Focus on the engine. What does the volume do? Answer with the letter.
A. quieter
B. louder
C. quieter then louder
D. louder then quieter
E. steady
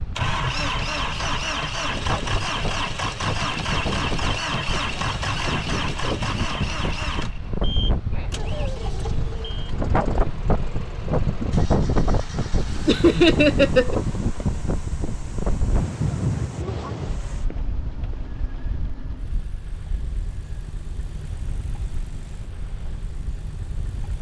A.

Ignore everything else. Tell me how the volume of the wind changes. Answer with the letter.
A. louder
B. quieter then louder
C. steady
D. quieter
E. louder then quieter
E.